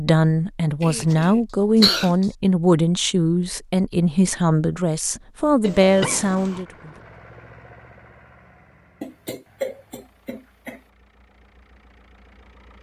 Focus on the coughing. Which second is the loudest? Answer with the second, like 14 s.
2 s.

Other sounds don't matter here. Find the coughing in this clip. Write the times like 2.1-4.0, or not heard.
0.8-2.2, 5.6-6.7, 9.0-10.8.